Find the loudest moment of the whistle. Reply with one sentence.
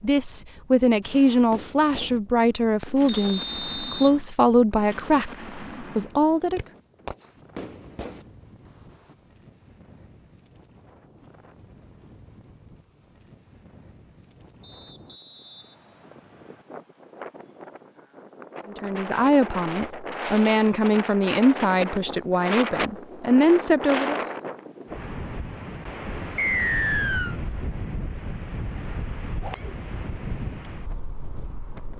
The loudest moment of the whistle is at 27 seconds.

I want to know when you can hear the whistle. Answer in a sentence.
You can hear the whistle from 3.0 to 4.1 s, from 14.6 to 16.6 s and from 26.4 to 27.4 s.